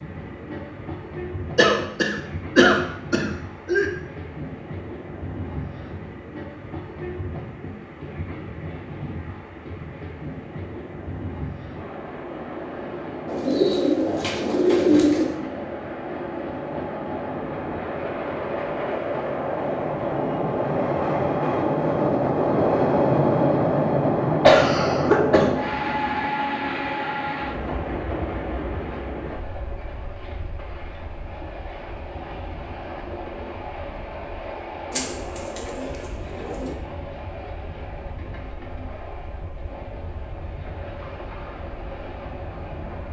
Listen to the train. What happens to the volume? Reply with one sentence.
The volume of the train goes up, then down.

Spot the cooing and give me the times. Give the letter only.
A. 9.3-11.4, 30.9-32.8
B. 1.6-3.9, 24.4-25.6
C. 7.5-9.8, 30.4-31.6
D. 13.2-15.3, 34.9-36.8
D.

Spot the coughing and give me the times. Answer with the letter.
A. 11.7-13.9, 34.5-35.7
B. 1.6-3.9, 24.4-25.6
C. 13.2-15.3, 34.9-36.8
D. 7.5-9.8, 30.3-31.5
B.